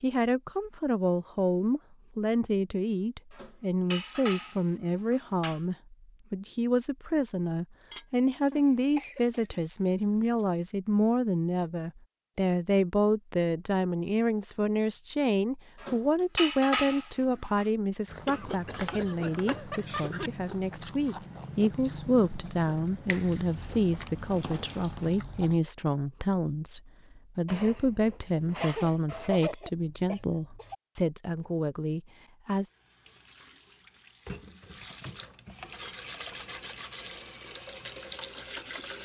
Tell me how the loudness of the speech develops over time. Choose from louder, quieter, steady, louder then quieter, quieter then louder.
steady.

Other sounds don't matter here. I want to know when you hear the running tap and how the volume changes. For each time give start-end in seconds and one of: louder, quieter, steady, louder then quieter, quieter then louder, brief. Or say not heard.
22.9-25.1 brief
32.6-39.0 louder.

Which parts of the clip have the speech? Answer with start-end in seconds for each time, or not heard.
0.0-32.7.